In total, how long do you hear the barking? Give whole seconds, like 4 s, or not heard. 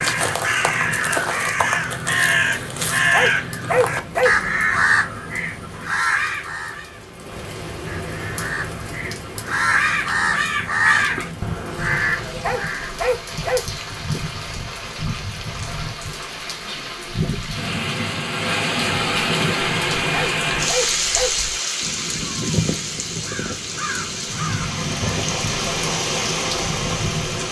4 s.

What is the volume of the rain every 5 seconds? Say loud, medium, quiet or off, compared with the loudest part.
quiet, medium, medium, loud, loud, loud.